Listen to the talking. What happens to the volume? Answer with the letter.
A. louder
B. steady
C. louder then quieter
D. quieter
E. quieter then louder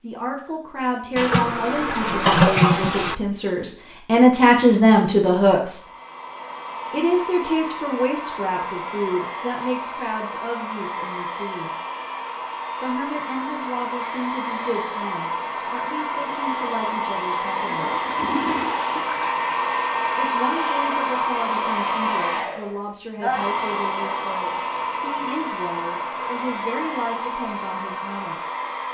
D.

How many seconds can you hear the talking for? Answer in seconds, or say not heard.
24 s.